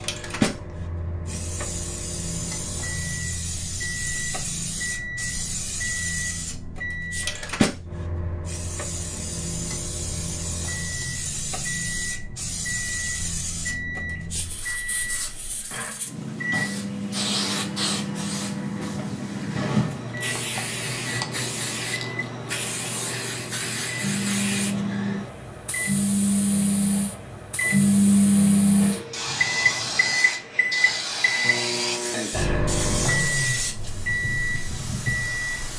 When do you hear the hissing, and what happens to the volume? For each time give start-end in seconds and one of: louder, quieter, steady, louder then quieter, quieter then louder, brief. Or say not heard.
0.0-35.7 steady.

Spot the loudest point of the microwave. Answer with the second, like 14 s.
28 s.